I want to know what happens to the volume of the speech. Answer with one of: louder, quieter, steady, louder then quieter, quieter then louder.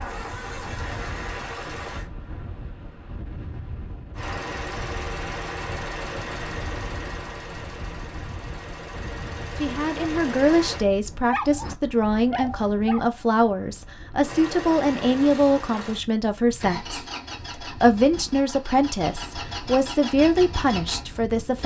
steady.